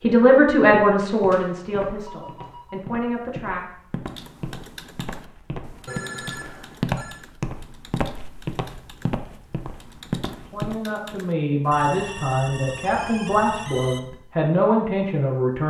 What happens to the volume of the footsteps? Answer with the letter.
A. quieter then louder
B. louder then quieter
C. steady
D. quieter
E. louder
E.